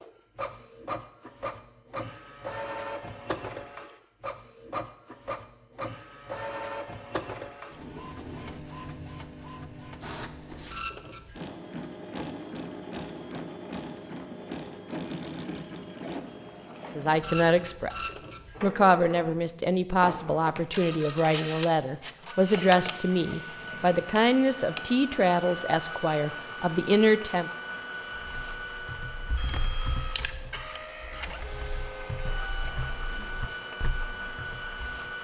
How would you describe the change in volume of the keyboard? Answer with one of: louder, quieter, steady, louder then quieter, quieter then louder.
quieter then louder.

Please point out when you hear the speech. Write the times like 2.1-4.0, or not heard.
16.9-27.5.